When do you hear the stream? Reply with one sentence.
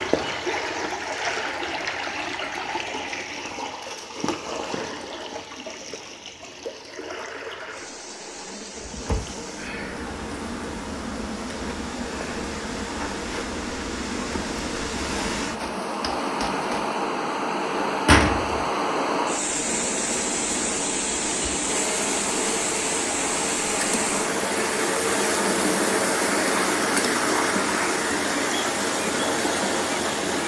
You can hear the stream from 0.0 to 30.4 s.